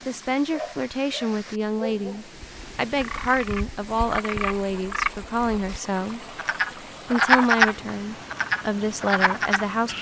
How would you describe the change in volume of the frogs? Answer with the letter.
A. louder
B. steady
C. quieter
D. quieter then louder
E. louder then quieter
E.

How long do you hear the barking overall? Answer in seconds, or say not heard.
2 s.